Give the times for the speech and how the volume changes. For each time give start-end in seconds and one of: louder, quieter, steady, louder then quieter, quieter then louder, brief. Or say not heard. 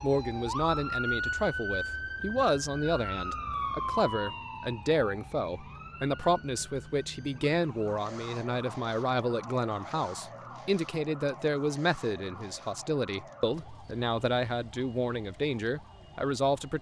0.0-16.7 steady.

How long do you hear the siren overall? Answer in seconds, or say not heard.
17 s.